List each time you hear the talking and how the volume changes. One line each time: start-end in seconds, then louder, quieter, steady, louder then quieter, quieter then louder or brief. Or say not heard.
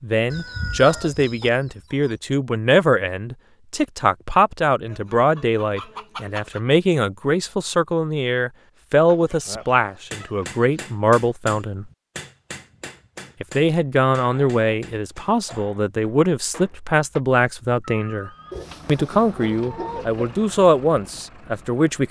0.0-11.8 steady
13.4-22.0 steady.